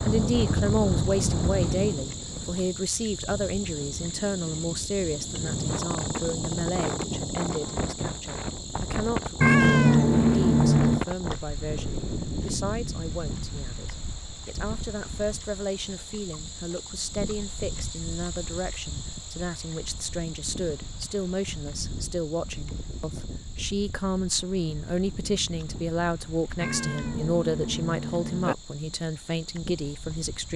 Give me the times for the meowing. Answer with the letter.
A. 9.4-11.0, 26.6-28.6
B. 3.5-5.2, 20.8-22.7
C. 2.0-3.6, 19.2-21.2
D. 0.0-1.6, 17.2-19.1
A.